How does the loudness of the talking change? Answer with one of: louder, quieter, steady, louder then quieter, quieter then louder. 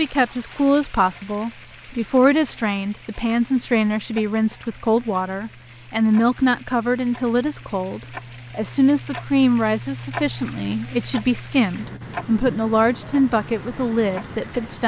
steady.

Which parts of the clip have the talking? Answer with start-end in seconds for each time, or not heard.
0.0-14.8.